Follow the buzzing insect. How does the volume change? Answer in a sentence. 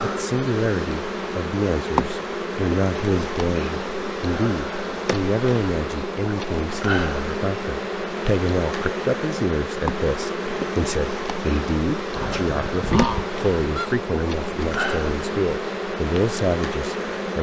The loudness of the buzzing insect stays about the same.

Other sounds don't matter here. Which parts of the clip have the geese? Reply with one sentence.
The geese can be heard from 12.1 to 13.9 s.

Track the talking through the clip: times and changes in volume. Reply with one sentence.
You can hear the talking from 0.0 to 17.3 s, at a steady volume.